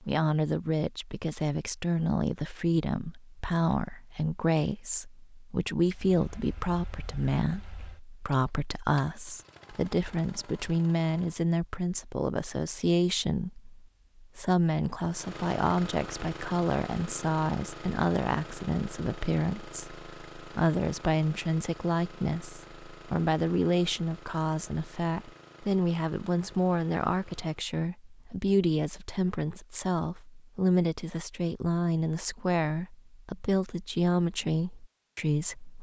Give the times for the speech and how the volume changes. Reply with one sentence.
The speech can be heard from 0.0 to 35.7 s, at a steady volume.